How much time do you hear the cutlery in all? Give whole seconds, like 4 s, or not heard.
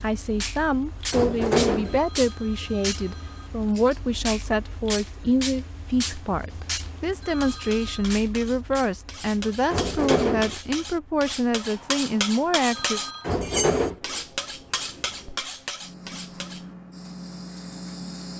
9 s.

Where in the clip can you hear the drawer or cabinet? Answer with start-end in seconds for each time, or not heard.
1.1-2.0, 9.7-10.6, 13.2-13.9.